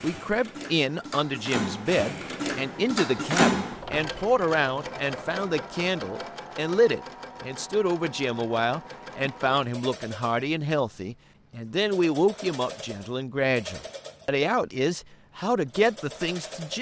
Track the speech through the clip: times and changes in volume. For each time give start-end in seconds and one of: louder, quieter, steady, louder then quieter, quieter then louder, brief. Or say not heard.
0.0-16.7 steady.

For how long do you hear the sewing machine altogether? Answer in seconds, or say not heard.
17 s.